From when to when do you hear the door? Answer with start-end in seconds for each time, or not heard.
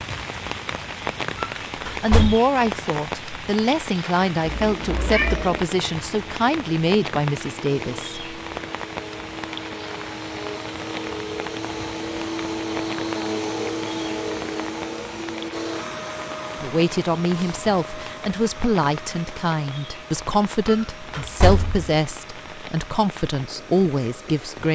1.4-2.4, 20.6-21.9.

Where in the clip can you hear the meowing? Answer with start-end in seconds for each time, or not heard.
4.4-5.7.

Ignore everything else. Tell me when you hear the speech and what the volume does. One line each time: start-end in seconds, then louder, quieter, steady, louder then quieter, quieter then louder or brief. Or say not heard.
1.9-8.2 steady
16.6-24.6 steady.